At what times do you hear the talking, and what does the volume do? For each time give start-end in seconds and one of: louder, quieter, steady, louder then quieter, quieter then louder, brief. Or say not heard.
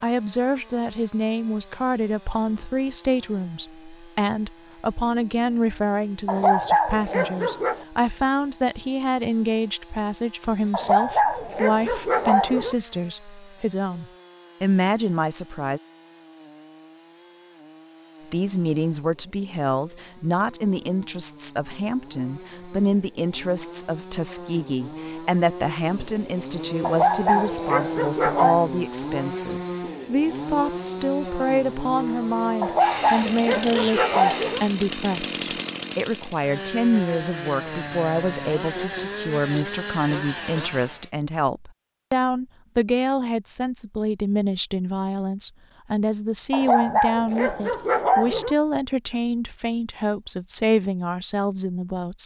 0.0-15.8 steady
18.3-52.2 steady.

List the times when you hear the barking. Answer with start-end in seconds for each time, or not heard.
6.2-7.8, 10.7-12.8, 26.8-28.7, 32.6-34.6, 46.5-48.5.